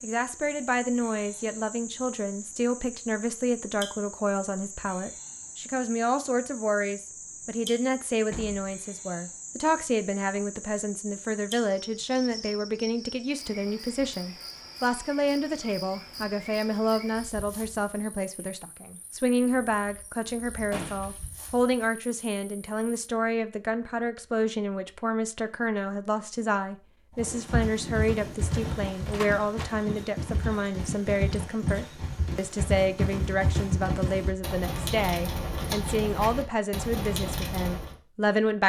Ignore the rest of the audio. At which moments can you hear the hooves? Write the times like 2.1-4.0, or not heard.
27.1-38.0.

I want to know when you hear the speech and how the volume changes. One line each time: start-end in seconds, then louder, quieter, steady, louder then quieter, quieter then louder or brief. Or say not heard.
0.0-38.6 steady.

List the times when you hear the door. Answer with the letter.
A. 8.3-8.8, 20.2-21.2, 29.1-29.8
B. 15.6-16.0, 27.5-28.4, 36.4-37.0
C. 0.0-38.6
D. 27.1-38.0
A.